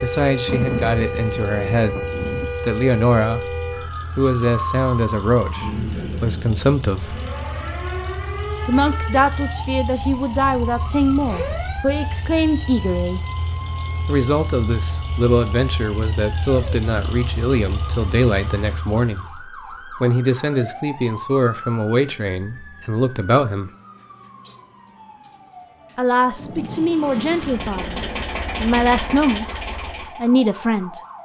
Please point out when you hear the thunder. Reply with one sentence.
You can hear the thunder from 0.5 to 2.5 s and from 26.4 to 28.3 s.